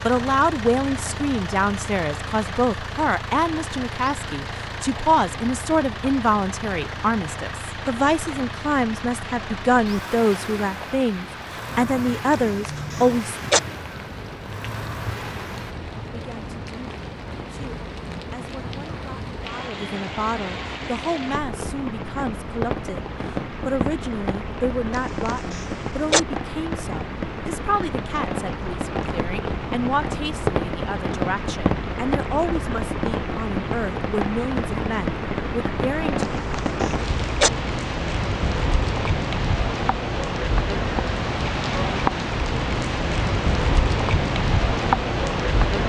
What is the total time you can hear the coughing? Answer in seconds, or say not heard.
4 s.